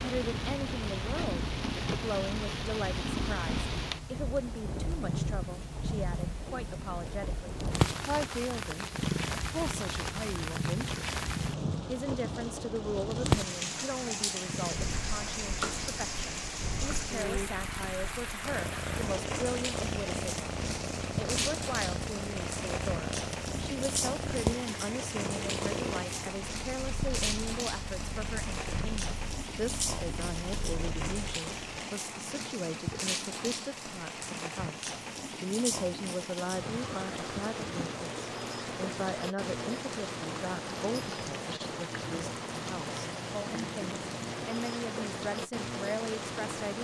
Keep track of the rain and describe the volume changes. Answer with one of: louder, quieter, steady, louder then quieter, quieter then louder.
steady.